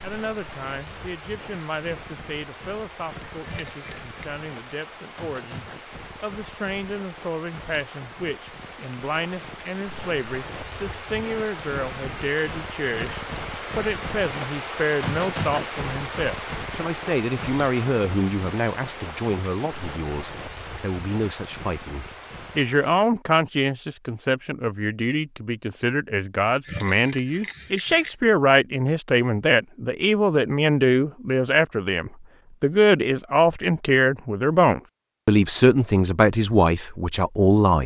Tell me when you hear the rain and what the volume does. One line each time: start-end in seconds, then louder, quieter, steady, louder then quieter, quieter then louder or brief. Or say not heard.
0.0-23.1 louder then quieter.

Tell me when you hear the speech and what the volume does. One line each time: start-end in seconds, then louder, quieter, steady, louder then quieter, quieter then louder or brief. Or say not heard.
0.0-37.8 louder.